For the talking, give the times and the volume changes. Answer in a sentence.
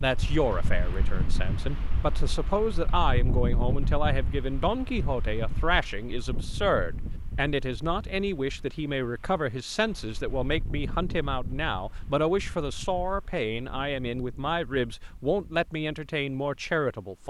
You can hear the talking from 0.0 to 17.2 s, at a steady volume.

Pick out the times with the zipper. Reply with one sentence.
You can't hear the zipper here.